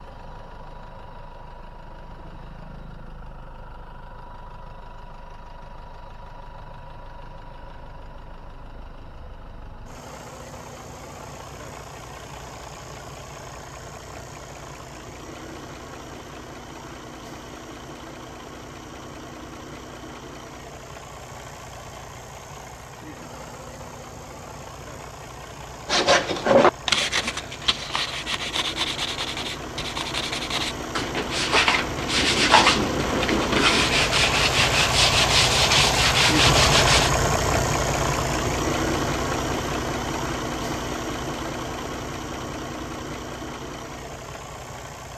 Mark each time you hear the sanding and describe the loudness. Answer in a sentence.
The sanding can be heard from 25.9 to 37.1 s, getting quieter then louder.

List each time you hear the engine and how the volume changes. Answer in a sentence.
The engine can be heard from 0.0 to 45.1 s, getting louder.